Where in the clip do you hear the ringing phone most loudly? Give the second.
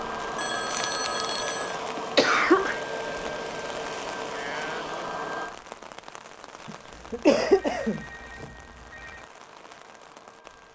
1 s.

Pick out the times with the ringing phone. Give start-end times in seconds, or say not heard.
0.3-1.8, 7.0-9.3.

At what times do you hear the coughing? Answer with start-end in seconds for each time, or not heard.
0.7-2.8, 6.7-8.4.